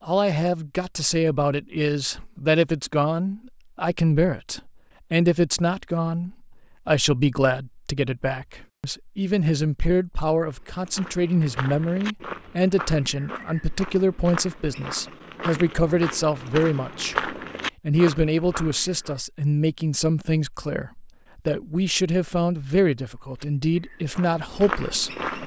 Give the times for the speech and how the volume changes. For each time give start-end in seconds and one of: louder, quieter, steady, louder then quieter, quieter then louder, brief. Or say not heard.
0.0-25.1 steady.